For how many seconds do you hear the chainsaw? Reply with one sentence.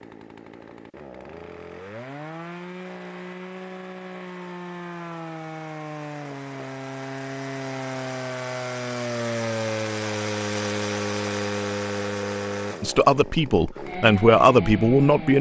The chainsaw can be heard for 15 seconds in total.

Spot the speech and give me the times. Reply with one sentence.
You can hear the speech from 12.8 to 15.3 s.